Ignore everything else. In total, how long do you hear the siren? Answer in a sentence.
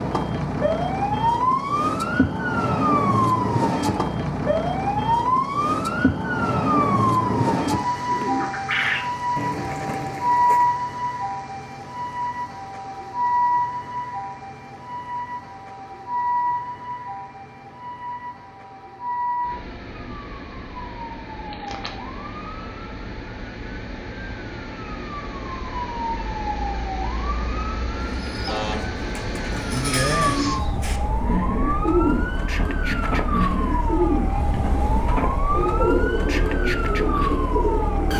The siren can be heard for 38 seconds in total.